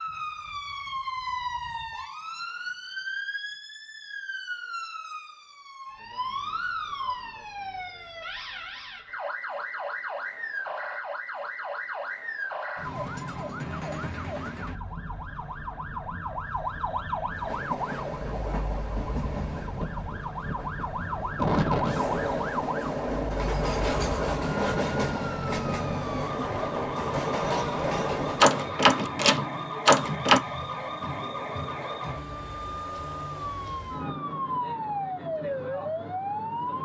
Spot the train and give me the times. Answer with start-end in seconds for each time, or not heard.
17.3-28.6.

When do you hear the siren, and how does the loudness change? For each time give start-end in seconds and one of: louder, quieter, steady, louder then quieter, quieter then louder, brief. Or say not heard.
0.0-36.8 steady.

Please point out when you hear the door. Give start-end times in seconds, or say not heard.
28.4-30.4.